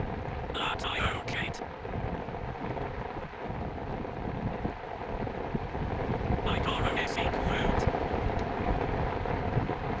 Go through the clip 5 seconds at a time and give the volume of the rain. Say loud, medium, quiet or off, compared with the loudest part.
medium, loud.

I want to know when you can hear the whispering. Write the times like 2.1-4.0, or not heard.
0.5-1.6, 6.5-7.8.